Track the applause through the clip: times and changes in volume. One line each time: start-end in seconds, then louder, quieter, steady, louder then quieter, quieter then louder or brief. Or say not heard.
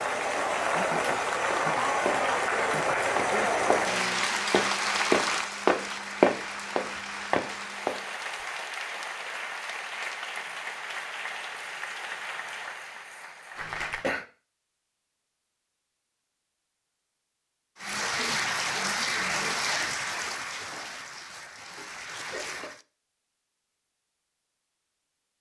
0.0-14.1 quieter
17.8-22.9 quieter.